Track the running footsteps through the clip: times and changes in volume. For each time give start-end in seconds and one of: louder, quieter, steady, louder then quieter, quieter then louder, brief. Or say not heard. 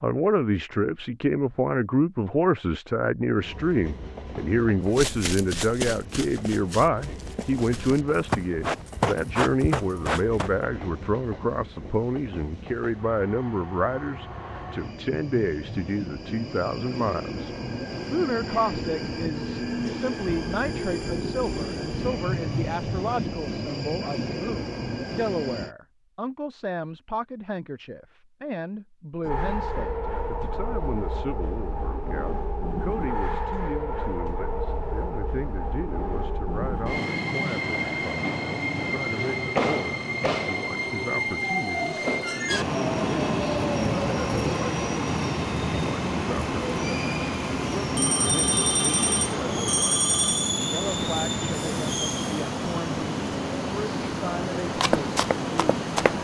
4.9-10.5 quieter then louder
54.8-56.1 brief.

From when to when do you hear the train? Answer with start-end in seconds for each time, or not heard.
3.4-25.8, 29.2-56.1.